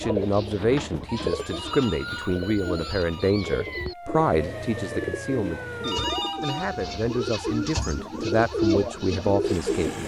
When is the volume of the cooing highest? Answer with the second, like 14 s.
9 s.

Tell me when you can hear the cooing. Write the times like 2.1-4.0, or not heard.
0.0-10.0.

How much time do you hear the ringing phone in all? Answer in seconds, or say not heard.
3 s.